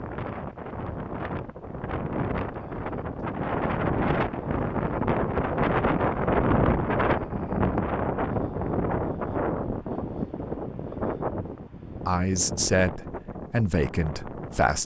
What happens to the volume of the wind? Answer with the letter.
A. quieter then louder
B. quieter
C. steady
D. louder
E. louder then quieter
E.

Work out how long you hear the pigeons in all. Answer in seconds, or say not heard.
not heard.